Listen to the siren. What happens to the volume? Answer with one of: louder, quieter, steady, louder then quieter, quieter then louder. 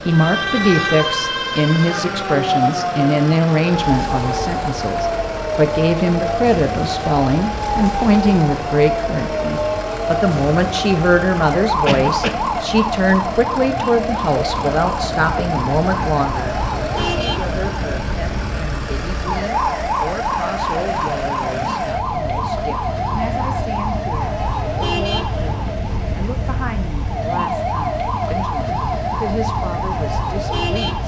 steady.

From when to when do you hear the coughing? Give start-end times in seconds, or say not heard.
11.8-12.5.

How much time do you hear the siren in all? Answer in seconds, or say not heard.
31 s.